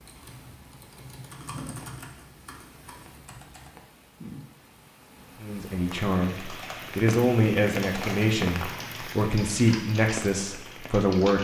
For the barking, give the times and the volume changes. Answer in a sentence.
The barking can't be heard in this clip.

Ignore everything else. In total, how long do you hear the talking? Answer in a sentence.
You can hear the talking for 6 seconds altogether.